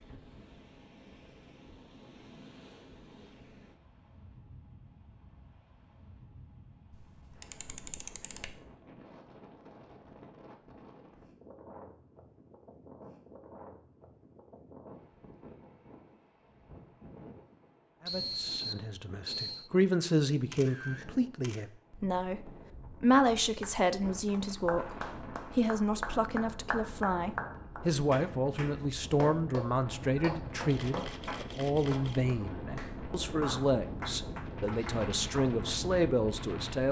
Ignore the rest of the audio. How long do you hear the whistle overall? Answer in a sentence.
The whistle can be heard for 2 seconds in total.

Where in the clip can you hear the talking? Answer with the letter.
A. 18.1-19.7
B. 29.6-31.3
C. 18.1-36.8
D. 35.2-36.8
C.